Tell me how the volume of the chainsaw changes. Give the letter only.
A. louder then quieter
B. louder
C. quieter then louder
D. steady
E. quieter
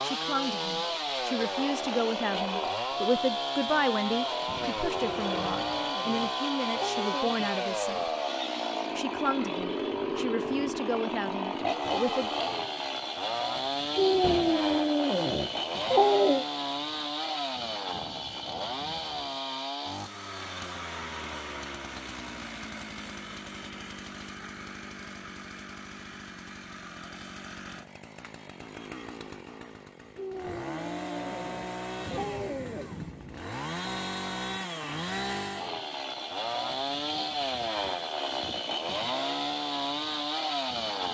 C.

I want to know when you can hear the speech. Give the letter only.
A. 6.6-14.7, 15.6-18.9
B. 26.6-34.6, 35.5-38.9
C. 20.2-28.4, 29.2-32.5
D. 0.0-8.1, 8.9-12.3
D.